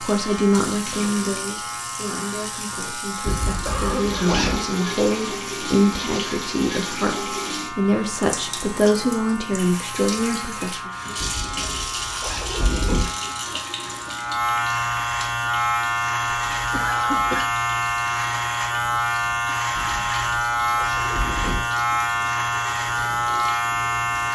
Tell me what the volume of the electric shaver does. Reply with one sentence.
The volume of the electric shaver goes up.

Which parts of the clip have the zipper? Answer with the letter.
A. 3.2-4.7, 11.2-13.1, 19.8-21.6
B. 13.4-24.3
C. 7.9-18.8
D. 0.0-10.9
A.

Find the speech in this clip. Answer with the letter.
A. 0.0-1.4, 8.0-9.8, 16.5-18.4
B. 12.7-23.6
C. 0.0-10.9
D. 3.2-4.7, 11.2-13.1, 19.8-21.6
C.